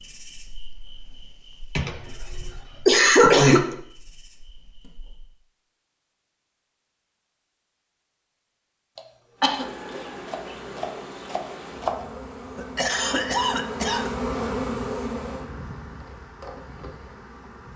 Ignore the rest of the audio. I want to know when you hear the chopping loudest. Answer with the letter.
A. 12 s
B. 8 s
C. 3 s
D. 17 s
A.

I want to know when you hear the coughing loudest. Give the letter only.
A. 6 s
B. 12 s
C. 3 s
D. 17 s
C.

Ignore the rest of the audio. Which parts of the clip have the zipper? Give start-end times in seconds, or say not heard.
not heard.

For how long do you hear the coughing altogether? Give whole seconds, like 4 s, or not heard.
4 s.